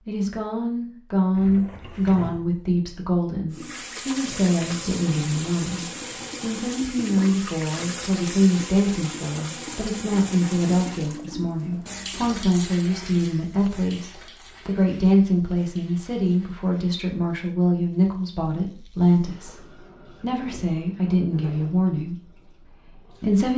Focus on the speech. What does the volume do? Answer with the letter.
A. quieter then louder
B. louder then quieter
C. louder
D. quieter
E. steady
E.